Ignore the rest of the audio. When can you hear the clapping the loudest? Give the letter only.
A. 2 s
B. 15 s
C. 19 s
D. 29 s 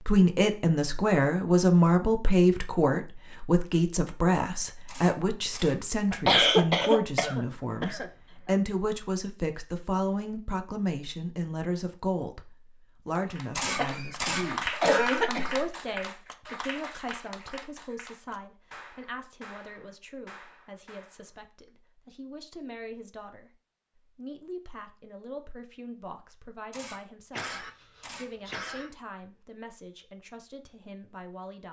B.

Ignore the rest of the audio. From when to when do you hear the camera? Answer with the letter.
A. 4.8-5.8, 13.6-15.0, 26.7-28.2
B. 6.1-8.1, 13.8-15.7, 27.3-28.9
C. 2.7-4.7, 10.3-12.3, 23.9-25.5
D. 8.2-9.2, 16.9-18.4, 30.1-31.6
A.